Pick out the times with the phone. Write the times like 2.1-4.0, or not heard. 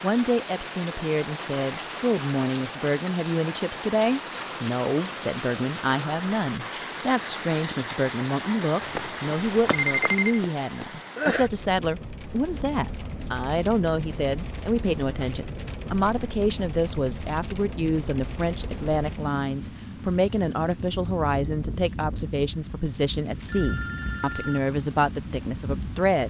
9.8-10.4, 23.4-24.7.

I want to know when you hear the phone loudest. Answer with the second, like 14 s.
10 s.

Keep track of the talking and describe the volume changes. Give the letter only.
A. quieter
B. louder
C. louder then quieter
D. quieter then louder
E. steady
E.